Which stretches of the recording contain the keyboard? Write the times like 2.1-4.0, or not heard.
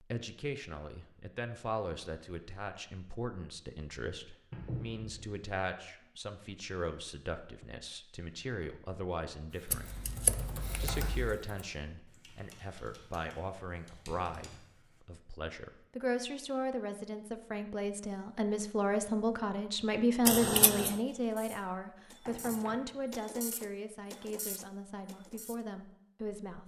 9.5-15.0.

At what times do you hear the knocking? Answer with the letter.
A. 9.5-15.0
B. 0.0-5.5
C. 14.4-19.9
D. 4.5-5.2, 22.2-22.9
D.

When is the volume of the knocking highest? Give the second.
5 s.